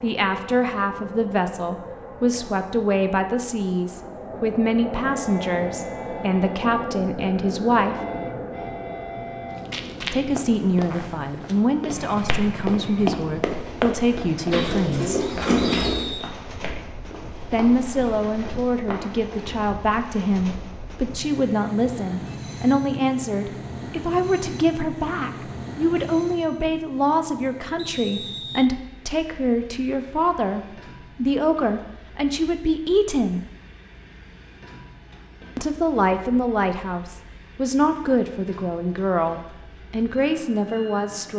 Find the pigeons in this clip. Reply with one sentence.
The pigeons can be heard from 14.5 to 16.1 s.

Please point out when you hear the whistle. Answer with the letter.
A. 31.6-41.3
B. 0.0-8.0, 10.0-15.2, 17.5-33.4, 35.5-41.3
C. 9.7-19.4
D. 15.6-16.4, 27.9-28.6
D.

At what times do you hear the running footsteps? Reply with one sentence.
The running footsteps can be heard from 9.7 to 19.4 s.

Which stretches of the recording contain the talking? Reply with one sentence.
The talking can be heard from 0.0 to 8.0 s, from 10.0 to 15.2 s, from 17.5 to 33.4 s and from 35.5 to 41.3 s.